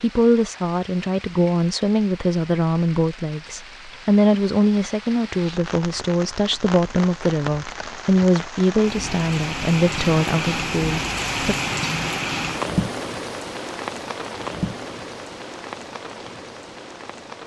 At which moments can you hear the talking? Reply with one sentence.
The talking can be heard from 0.0 to 11.6 s.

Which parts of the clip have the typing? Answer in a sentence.
The typing can't be heard in this clip.